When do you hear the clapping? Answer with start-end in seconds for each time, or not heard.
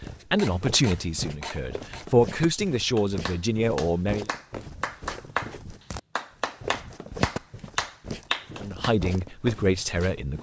3.0-5.5, 6.2-8.9.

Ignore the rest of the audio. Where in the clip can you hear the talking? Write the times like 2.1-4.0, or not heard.
0.3-4.3, 8.6-10.3.